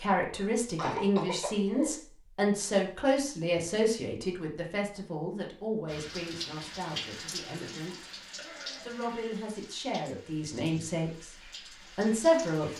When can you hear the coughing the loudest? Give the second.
1 s.